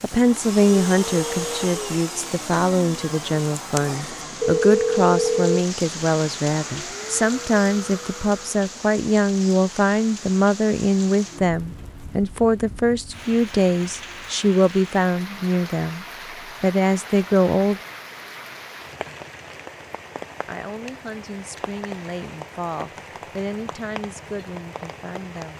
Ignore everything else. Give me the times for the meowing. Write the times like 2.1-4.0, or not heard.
not heard.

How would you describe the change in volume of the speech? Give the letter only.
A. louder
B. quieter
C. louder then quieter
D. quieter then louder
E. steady
B.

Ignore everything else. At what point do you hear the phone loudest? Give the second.
5 s.